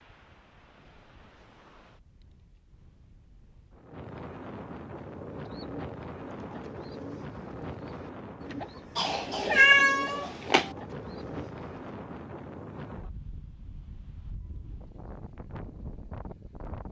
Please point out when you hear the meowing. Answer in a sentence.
You can hear the meowing from 8.9 to 10.7 s.